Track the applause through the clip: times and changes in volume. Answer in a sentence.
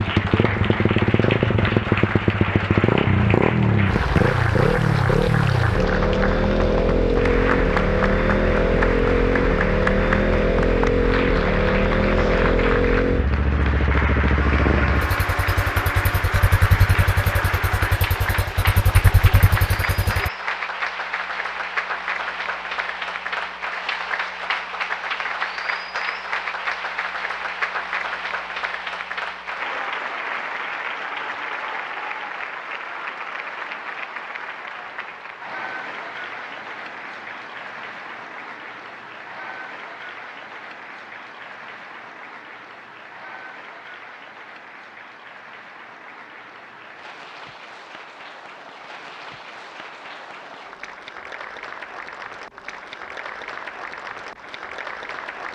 The applause can be heard from 0.0 to 55.5 s, getting quieter.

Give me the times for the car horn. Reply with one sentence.
You can hear the car horn from 14.3 to 16.2 s.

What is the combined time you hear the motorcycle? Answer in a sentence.
The motorcycle can be heard for 20 seconds in total.